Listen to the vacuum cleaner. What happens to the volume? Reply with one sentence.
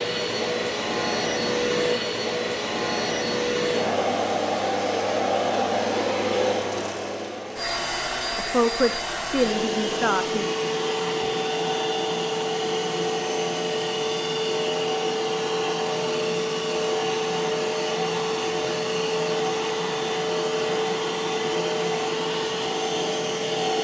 The loudness of the vacuum cleaner stays about the same.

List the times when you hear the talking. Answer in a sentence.
You can hear the talking from 8.3 to 10.4 s.